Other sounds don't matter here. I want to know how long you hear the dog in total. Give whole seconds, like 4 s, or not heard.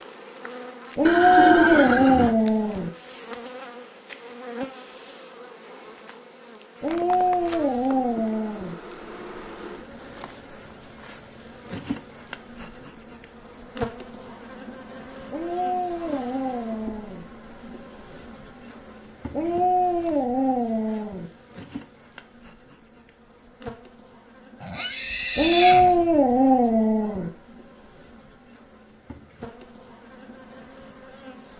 10 s.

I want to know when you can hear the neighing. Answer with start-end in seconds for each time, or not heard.
1.1-2.4, 24.6-25.9.